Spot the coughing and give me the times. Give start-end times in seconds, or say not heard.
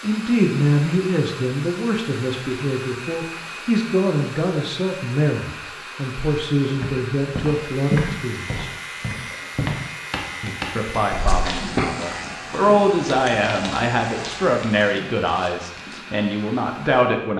11.1-11.9.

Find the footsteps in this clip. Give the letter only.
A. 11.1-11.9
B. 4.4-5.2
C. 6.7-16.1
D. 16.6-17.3
C.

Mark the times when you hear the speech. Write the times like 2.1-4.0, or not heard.
0.0-8.7, 10.4-17.3.